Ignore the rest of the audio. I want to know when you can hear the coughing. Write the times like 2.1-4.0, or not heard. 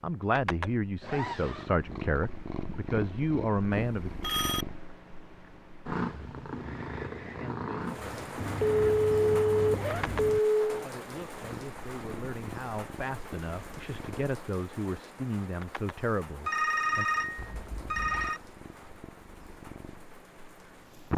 not heard.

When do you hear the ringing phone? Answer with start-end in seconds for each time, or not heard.
3.7-4.7, 8.6-10.8, 16.4-18.4.